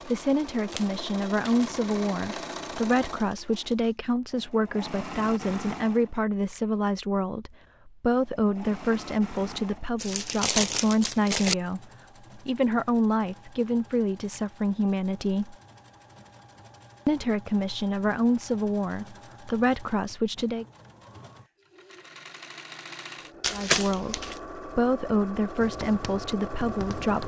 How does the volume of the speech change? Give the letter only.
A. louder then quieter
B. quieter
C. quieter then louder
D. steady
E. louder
D.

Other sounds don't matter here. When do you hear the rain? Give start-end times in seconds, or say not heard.
not heard.